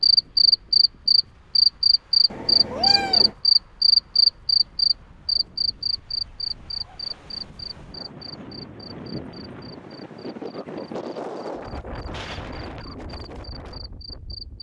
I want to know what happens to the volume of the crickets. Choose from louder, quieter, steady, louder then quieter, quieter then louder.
quieter.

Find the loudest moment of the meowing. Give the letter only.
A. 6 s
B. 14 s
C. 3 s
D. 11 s
C.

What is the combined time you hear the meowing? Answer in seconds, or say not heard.
2 s.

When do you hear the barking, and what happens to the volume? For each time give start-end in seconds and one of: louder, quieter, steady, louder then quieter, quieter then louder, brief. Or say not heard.
not heard.